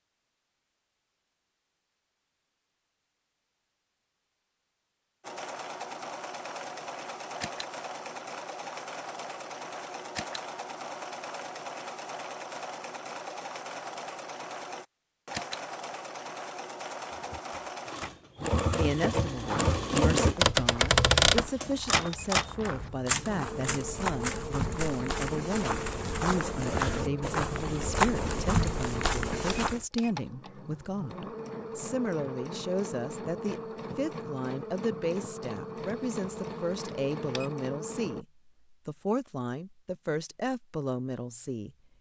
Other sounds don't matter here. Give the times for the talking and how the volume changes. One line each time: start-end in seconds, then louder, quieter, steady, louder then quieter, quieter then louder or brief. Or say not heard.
18.8-41.7 steady.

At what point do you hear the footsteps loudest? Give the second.
28 s.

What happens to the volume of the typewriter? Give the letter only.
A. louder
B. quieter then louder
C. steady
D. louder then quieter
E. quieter
D.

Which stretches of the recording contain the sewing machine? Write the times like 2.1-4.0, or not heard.
5.2-38.2.